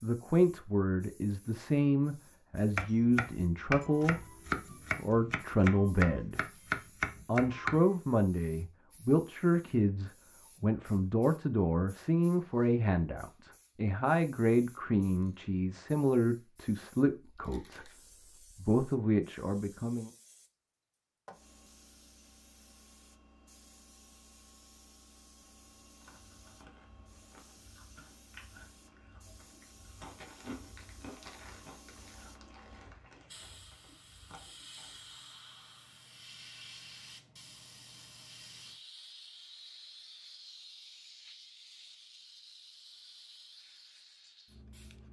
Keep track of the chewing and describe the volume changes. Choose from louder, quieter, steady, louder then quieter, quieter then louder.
louder then quieter.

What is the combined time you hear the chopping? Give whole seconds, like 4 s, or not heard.
5 s.